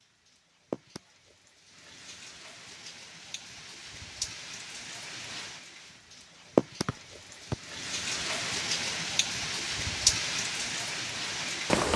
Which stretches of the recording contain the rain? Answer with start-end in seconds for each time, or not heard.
0.0-11.9.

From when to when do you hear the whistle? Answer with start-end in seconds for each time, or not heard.
6.8-7.5.